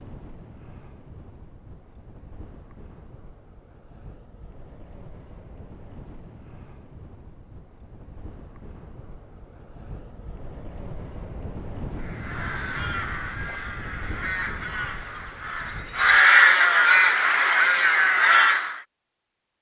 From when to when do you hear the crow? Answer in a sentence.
You can hear the crow from 11.9 to 18.8 s.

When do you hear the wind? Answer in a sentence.
The wind can be heard from 0.0 to 16.2 s.